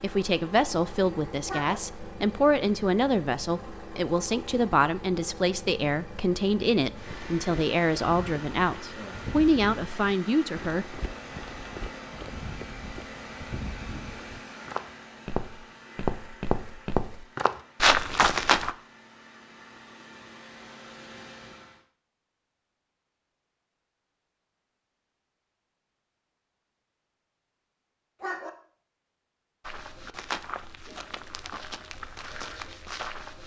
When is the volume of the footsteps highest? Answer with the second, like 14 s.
18 s.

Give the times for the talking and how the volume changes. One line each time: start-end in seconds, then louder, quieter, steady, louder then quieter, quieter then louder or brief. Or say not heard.
0.0-11.0 steady.